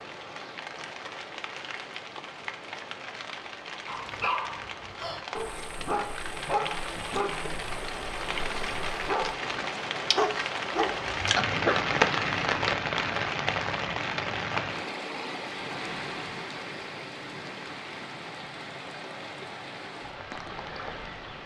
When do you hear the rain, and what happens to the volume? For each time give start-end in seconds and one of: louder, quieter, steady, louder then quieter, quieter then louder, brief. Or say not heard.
0.0-21.4 louder then quieter.